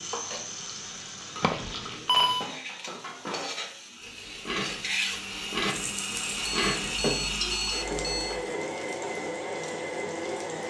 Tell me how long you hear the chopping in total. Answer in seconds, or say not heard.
not heard.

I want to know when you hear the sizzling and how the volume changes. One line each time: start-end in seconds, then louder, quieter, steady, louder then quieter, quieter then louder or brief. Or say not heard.
0.0-10.6 louder then quieter.